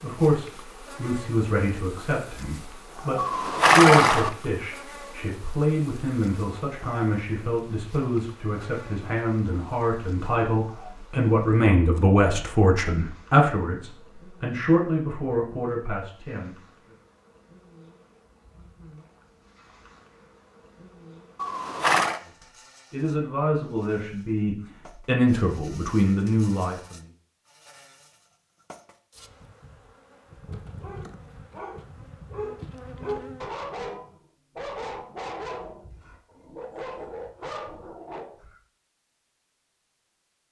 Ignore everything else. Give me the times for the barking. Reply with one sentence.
You can hear the barking from 30.4 to 38.6 s.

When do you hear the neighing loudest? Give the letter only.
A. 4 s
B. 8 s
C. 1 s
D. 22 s
A.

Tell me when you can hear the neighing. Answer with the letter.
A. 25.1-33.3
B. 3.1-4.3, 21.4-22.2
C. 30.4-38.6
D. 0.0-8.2
B.